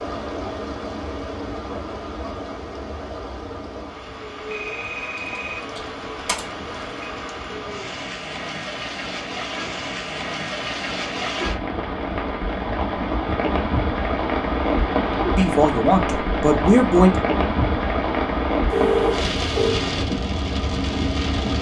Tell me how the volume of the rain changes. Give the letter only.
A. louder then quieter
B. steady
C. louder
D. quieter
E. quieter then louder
C.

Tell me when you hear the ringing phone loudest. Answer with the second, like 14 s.
19 s.